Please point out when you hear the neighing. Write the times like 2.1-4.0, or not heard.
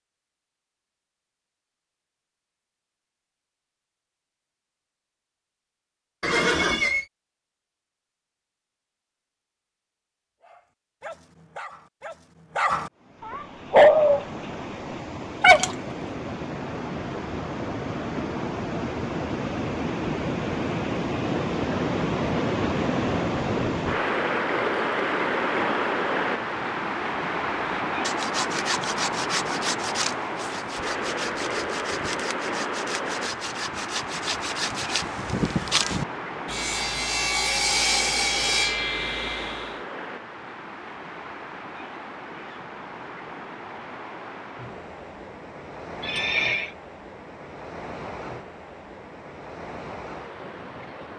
6.2-7.0, 46.0-46.8.